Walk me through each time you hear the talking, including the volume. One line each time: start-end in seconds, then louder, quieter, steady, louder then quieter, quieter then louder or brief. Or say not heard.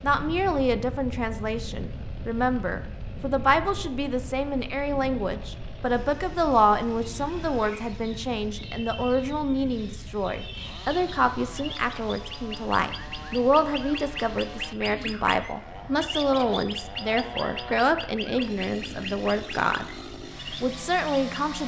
0.0-19.9 steady
20.6-21.6 brief.